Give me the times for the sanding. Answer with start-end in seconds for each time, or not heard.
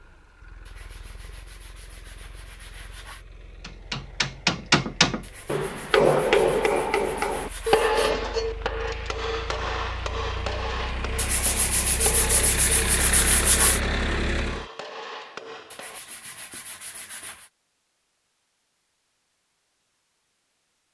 0.7-3.2, 5.2-8.0, 11.2-13.8, 15.7-17.5.